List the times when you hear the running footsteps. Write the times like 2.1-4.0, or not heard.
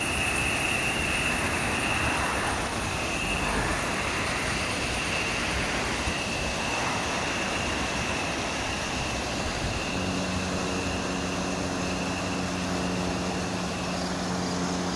not heard.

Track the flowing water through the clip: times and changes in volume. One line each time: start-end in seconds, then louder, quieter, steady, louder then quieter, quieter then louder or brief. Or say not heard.
0.0-14.9 steady.